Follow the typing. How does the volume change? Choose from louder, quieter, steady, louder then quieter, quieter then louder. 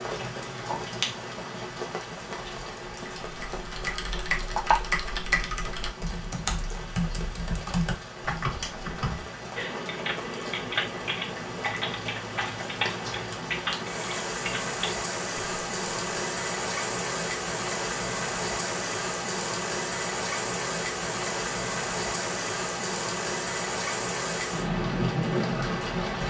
steady.